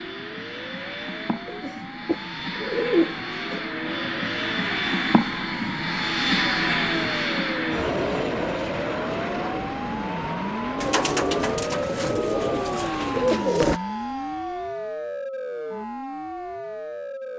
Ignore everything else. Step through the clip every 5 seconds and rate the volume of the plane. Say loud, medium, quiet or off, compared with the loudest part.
medium, loud, medium, off.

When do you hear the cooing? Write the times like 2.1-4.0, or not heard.
1.4-3.6, 10.8-13.8.